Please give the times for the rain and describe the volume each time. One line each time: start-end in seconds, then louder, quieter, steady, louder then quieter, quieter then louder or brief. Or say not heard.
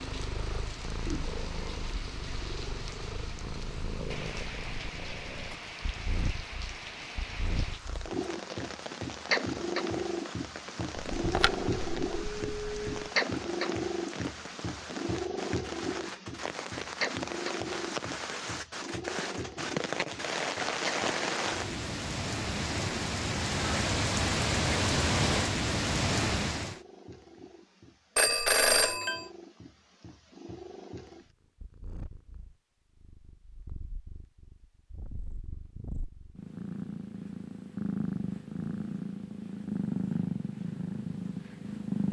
0.0-26.8 louder.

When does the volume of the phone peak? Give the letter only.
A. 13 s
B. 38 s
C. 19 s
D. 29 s
D.